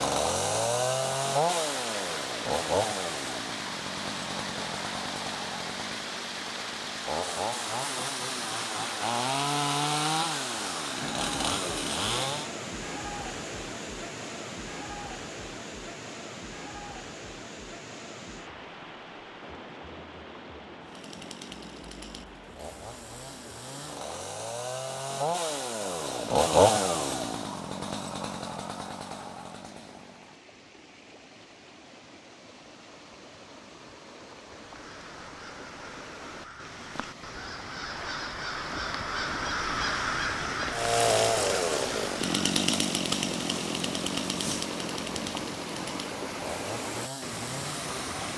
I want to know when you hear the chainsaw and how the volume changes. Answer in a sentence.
The chainsaw can be heard from 0.0 to 12.5 s, getting quieter then louder; from 20.9 to 30.4 s, getting louder then quieter; and from 40.7 to 48.3 s, getting quieter.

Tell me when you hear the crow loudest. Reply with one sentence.
The loudest moment of the crow is at 40 seconds.